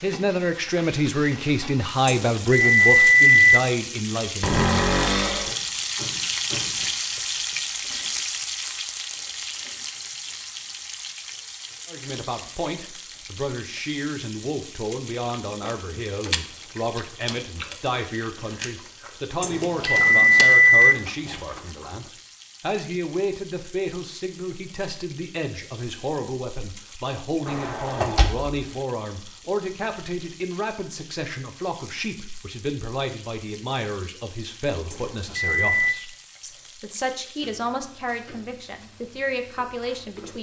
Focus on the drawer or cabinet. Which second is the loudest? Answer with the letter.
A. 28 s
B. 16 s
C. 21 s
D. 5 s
D.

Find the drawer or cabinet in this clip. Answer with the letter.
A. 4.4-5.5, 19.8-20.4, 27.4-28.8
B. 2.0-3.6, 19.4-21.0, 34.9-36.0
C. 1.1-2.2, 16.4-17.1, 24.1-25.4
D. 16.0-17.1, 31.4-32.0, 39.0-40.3
A.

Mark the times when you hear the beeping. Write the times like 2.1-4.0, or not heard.
2.0-3.6, 19.4-21.0, 34.9-36.0.